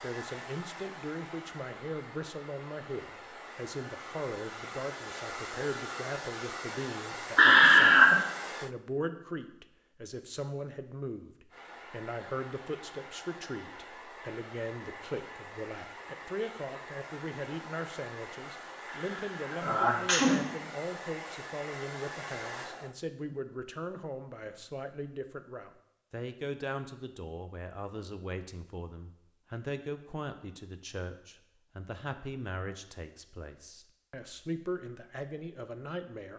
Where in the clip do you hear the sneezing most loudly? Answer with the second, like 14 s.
8 s.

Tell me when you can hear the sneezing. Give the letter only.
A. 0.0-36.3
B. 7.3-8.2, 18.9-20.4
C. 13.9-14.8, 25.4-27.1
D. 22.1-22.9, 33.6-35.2
B.